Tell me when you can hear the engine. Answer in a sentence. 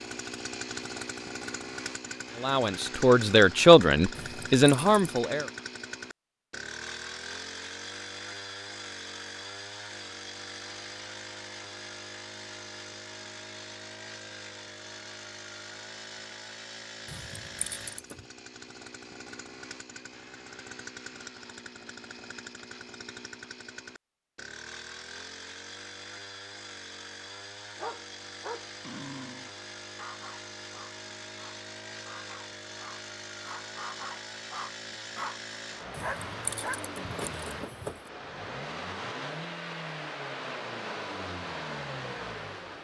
You can hear the engine from 0.0 to 42.8 s.